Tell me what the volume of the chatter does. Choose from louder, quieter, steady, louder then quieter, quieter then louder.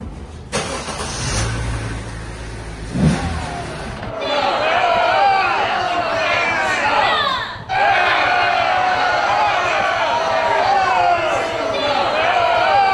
steady.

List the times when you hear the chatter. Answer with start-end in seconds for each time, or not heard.
3.1-12.8.